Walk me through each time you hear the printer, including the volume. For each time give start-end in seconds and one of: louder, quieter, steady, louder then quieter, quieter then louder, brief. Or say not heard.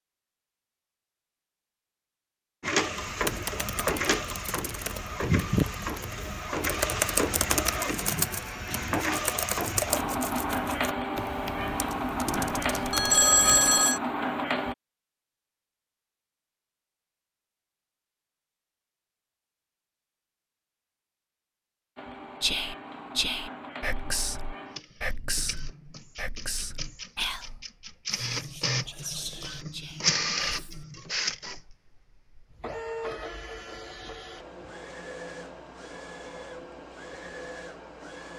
2.6-14.8 steady
21.9-38.3 louder then quieter.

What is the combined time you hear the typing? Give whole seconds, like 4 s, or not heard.
11 s.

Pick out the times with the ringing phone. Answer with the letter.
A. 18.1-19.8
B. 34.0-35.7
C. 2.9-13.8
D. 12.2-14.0
D.